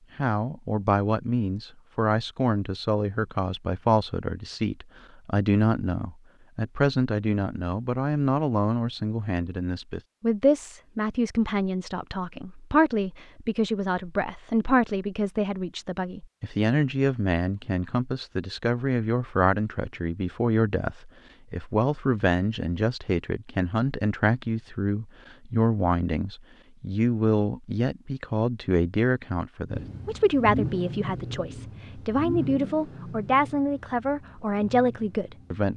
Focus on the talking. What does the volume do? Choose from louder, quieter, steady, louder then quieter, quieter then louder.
steady.